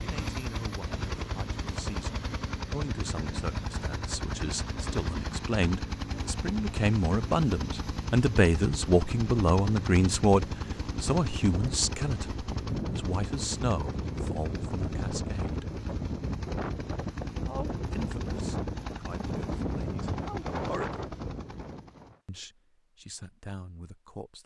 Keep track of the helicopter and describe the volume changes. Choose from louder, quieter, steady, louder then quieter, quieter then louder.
steady.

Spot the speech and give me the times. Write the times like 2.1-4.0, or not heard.
0.0-15.7, 17.4-21.0, 22.2-24.4.